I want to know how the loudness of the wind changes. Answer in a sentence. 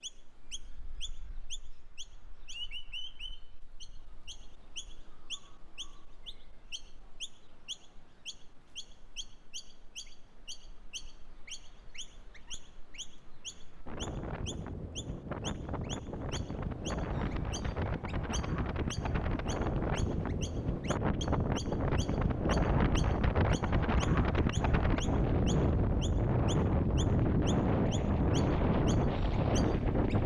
The loudness of the wind goes up.